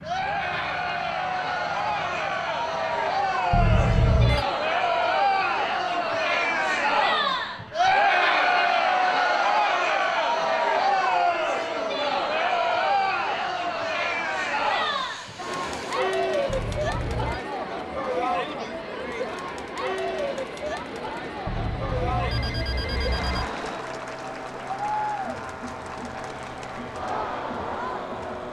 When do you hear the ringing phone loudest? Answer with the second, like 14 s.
4 s.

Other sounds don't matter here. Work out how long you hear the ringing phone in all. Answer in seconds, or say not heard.
4 s.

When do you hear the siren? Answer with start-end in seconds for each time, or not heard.
not heard.